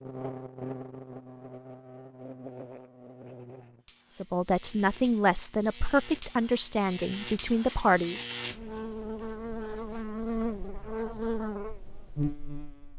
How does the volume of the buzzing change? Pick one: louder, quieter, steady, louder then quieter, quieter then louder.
quieter then louder.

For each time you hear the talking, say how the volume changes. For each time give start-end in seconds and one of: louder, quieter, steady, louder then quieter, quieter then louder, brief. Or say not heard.
4.1-8.2 steady.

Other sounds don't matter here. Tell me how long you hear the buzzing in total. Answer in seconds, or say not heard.
13 s.